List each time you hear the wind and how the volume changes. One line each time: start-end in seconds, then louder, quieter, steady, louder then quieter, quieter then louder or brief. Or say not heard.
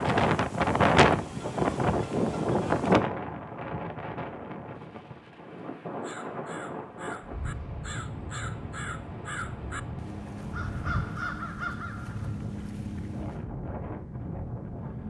0.0-15.0 quieter.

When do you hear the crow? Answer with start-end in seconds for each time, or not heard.
6.0-13.4.